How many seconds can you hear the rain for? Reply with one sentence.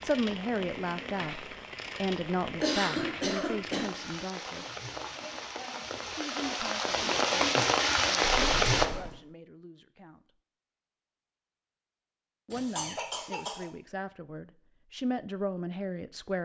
You can hear the rain for 9 seconds altogether.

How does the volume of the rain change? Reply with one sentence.
The loudness of the rain goes up.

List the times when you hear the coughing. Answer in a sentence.
The coughing can be heard from 2.6 to 4.0 s, from 8.2 to 9.2 s and from 12.5 to 13.7 s.